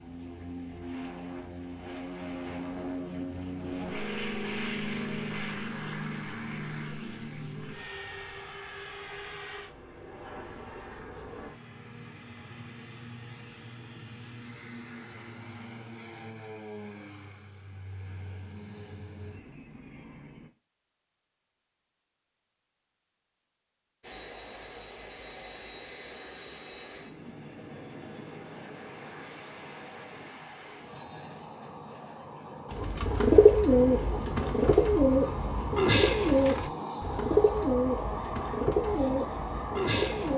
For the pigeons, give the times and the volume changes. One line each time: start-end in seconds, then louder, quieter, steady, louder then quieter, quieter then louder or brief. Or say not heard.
32.7-40.3 quieter.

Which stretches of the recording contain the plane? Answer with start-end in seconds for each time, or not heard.
0.0-20.5, 24.0-40.3.